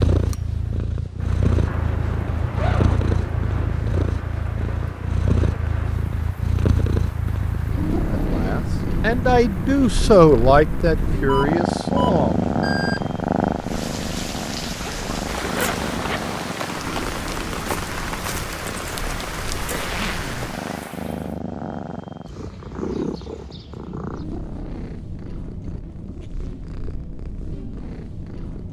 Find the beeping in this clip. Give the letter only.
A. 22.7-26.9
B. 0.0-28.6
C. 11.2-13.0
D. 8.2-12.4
C.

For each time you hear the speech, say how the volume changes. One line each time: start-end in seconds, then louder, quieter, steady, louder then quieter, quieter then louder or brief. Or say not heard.
8.2-12.4 louder then quieter.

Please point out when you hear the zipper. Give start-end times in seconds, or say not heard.
1.6-3.7, 14.8-16.4, 19.7-20.5.